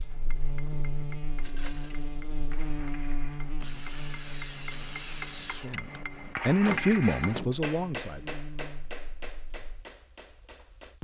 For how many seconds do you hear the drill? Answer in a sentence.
The drill can be heard for 2 seconds in total.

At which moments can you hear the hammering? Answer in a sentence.
The hammering can be heard from 0.0 to 11.0 s.